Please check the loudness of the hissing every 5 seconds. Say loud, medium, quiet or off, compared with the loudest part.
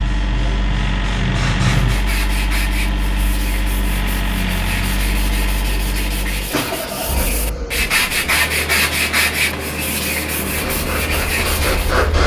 loud, off, loud.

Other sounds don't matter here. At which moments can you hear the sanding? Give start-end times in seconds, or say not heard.
1.9-12.1.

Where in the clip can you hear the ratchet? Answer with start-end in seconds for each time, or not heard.
not heard.